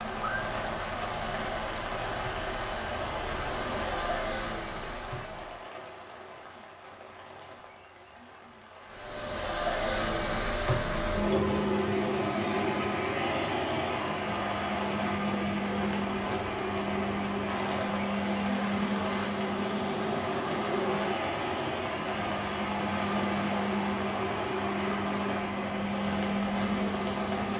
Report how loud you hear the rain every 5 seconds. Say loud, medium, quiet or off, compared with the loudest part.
loud, medium, loud, loud, loud, loud.